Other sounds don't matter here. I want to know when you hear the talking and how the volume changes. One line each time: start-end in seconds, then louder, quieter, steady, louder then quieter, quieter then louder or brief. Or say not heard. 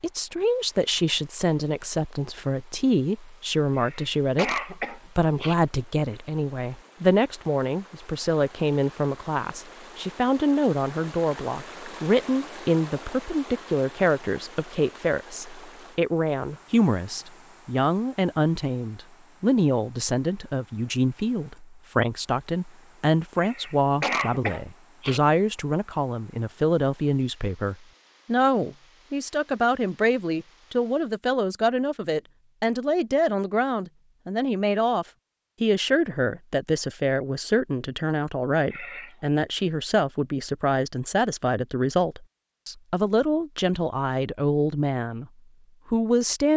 0.0-45.2 steady
45.9-46.5 brief.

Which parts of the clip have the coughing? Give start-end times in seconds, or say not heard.
3.8-5.5, 23.4-25.2, 38.7-39.2.